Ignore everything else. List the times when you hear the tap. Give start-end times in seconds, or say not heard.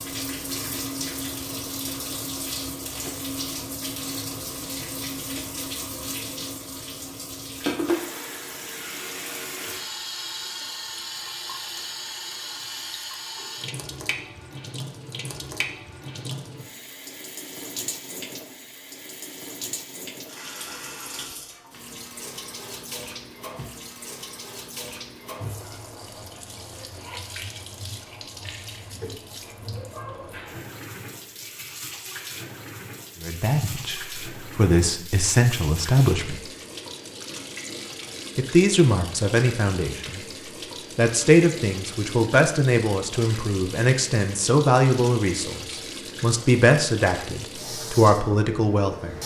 0.0-49.2.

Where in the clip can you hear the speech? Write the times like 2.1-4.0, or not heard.
33.2-36.4, 38.4-40.2, 41.0-49.2.